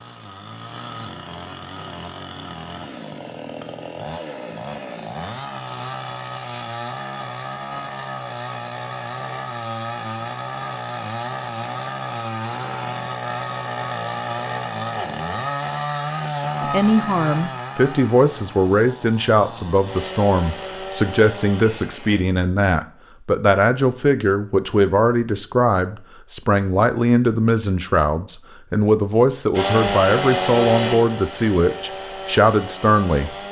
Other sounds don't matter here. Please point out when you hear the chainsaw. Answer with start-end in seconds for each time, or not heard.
0.0-22.2, 29.5-33.4.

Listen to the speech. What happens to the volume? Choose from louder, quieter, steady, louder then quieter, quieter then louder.
steady.